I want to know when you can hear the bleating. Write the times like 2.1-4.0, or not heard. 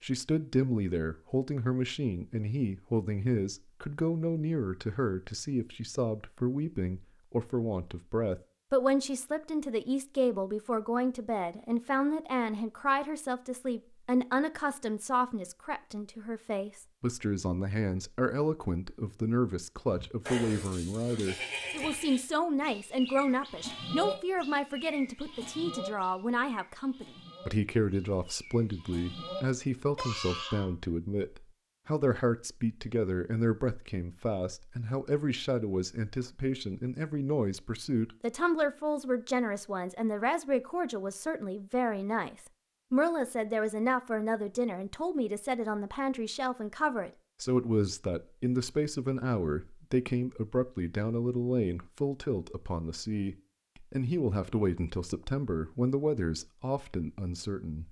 19.9-30.7.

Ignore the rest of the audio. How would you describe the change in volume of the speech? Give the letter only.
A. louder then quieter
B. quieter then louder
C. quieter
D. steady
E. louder
D.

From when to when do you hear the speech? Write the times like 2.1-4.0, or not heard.
0.0-57.8.